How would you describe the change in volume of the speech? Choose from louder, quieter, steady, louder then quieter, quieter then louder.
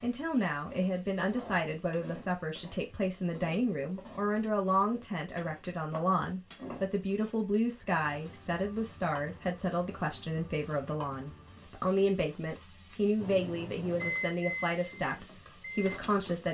steady.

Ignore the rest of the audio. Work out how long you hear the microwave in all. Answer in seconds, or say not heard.
3 s.